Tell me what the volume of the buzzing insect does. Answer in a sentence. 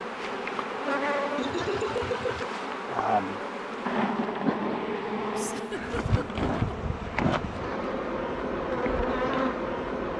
The loudness of the buzzing insect stays about the same.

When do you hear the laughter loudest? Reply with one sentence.
The loudest moment of the laughter is at 2 seconds.